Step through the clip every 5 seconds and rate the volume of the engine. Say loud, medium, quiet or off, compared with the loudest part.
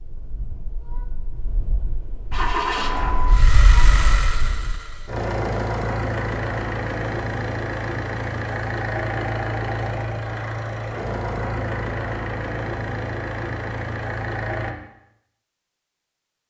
loud, loud, loud, off.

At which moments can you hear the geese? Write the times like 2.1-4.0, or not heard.
0.0-5.0.